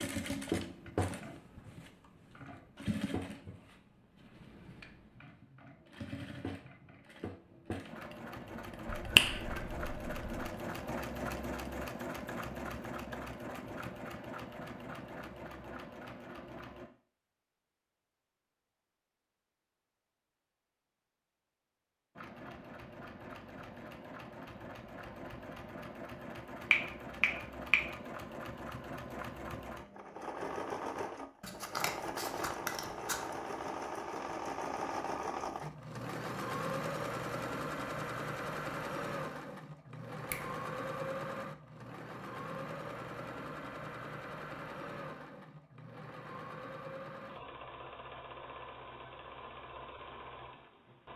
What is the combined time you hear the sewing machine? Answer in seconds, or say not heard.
46 s.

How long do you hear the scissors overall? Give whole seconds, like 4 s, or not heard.
2 s.